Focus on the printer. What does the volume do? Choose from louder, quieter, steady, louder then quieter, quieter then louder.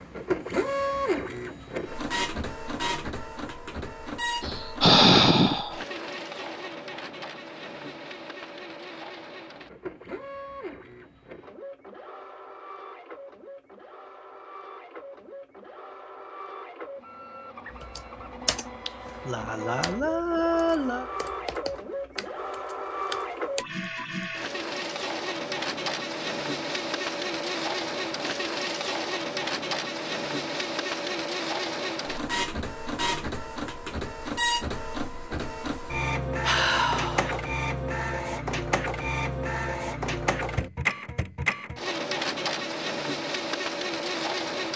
quieter then louder.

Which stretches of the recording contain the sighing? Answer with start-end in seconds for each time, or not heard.
4.4-5.8, 18.9-21.1, 36.4-37.4.